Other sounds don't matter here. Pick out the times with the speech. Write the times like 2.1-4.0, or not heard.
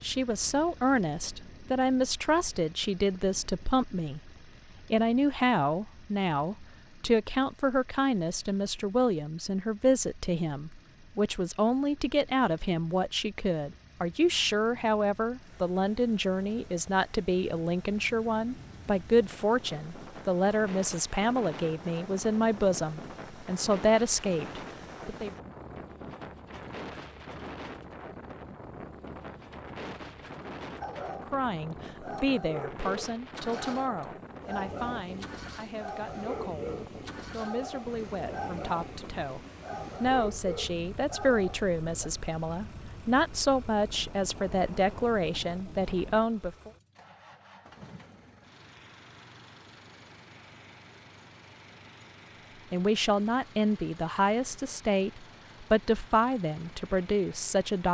0.0-4.3, 4.9-25.4, 31.3-39.4, 40.0-46.7, 52.7-57.8.